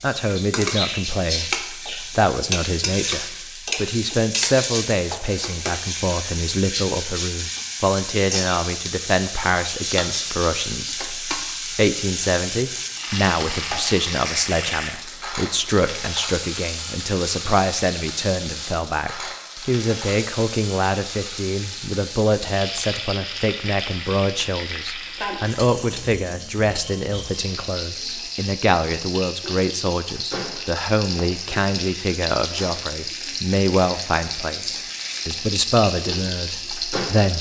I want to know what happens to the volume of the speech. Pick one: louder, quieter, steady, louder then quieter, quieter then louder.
steady.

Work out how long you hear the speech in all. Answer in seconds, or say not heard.
37 s.